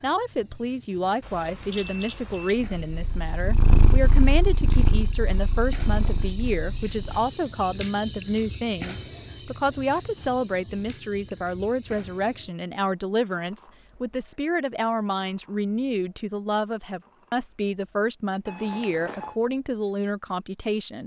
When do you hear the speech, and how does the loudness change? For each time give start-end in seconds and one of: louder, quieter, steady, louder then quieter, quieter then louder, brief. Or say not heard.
0.0-21.0 steady.